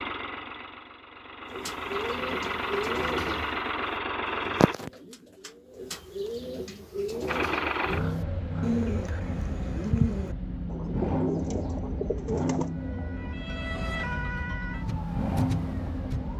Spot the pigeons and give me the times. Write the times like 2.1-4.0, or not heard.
1.4-12.8.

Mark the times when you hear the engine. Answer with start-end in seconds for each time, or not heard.
0.0-4.8, 7.2-16.3.